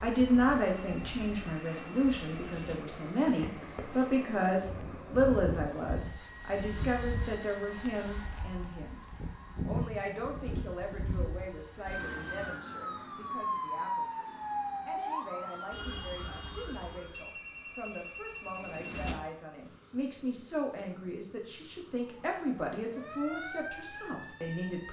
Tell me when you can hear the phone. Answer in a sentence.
You can hear the phone from 0.8 to 2.8 s and from 17.1 to 19.1 s.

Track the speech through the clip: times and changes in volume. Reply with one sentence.
You can hear the speech from 0.0 to 24.8 s, getting quieter then louder.